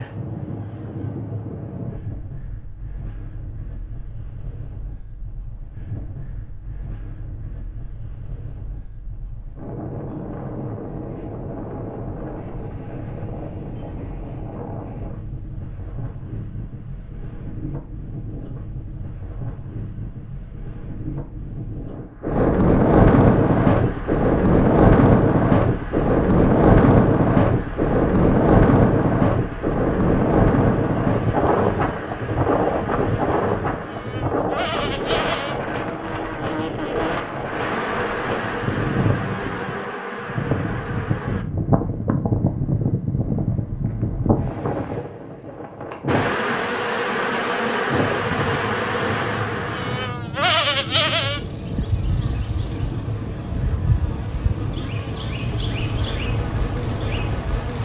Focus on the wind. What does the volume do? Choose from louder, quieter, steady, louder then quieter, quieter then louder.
louder then quieter.